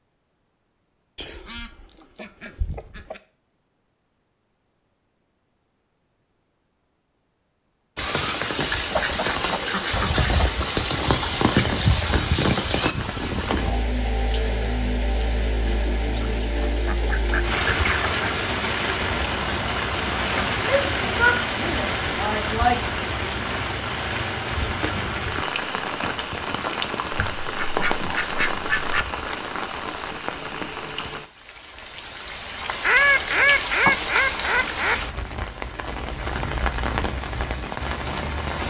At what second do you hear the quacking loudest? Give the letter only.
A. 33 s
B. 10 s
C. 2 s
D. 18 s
A.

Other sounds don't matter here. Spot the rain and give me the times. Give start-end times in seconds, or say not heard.
8.0-38.6.